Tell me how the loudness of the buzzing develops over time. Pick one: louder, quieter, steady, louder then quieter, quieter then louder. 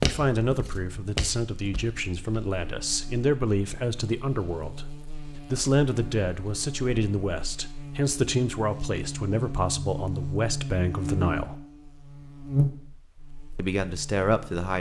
louder.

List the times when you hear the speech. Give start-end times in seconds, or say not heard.
0.0-11.6, 13.6-14.7.